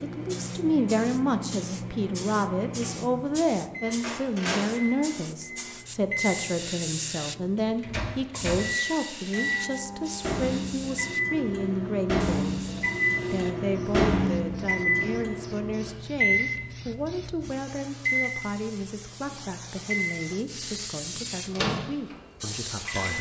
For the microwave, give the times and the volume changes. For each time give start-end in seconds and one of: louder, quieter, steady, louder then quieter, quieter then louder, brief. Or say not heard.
0.0-23.1 louder then quieter.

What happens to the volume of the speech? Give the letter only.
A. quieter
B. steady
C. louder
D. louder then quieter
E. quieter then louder
A.